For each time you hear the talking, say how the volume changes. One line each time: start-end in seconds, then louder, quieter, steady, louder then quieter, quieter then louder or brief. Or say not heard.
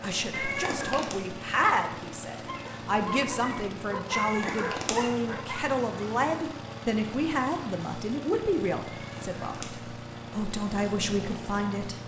0.0-12.0 steady.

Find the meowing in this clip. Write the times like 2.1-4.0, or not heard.
0.3-1.1, 4.1-5.0, 8.9-9.7.